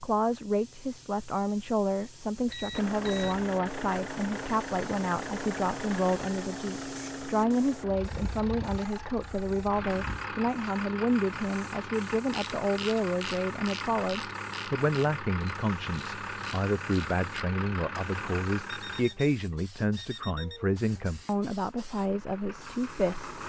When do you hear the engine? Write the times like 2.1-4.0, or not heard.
2.7-19.1, 21.0-23.4.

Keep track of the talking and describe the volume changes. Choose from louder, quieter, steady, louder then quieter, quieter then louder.
steady.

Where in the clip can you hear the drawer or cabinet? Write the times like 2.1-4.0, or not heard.
not heard.